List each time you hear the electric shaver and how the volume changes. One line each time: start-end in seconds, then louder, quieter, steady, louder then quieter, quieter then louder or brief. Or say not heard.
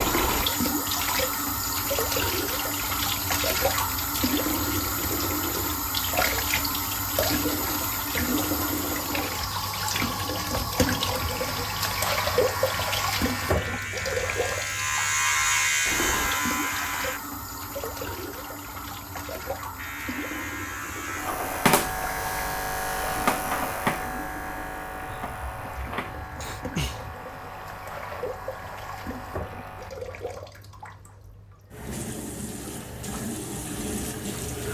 11.2-17.2 louder
19.8-29.9 quieter.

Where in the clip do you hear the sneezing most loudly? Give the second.
27 s.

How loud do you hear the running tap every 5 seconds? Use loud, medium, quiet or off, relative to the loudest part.
loud, loud, loud, medium, quiet, quiet, medium.